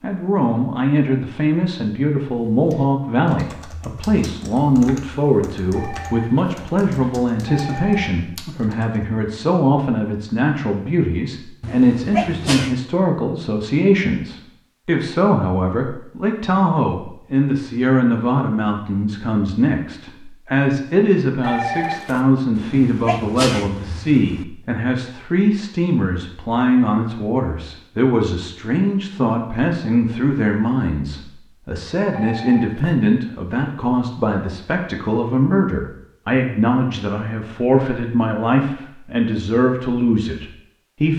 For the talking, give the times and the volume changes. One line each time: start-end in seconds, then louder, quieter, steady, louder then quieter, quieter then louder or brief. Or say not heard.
0.0-41.1 steady.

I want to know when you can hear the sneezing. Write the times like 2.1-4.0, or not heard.
11.6-12.8, 22.6-24.4.